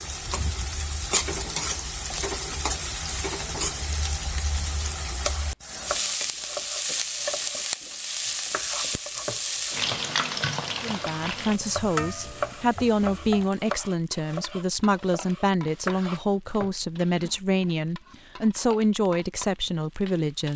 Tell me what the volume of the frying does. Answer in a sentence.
The loudness of the frying goes down.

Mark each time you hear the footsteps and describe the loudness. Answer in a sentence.
You can't hear the footsteps here.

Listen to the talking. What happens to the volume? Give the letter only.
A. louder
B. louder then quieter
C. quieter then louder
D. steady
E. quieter
D.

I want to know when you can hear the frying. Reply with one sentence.
The frying can be heard from 0.0 to 20.5 s.